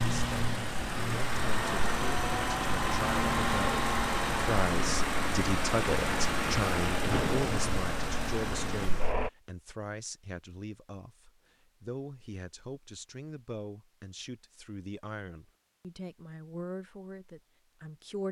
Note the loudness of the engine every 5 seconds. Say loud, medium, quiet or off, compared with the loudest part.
loud, loud, off, off.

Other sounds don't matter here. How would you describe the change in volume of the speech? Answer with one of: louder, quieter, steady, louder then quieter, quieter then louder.
louder then quieter.